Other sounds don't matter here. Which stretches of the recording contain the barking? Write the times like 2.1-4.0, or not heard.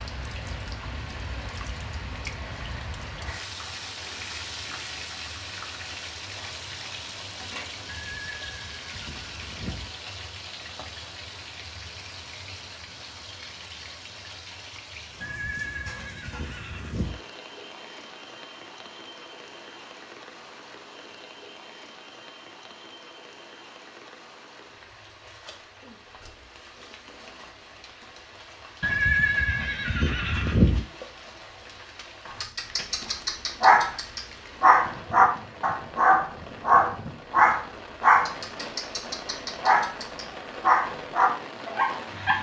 32.4-42.3.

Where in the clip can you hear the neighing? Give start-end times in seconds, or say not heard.
7.8-9.9, 15.2-17.2, 28.8-30.9.